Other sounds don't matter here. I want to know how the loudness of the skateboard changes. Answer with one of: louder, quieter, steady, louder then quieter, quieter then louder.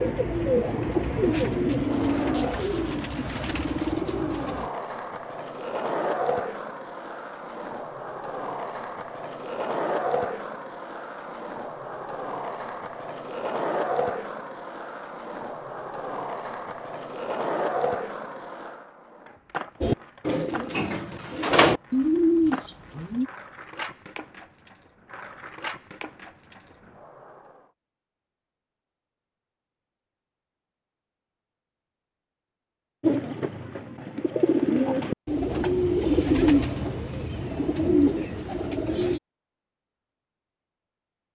quieter.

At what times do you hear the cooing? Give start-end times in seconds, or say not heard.
0.0-4.7, 19.8-23.2, 33.0-39.2.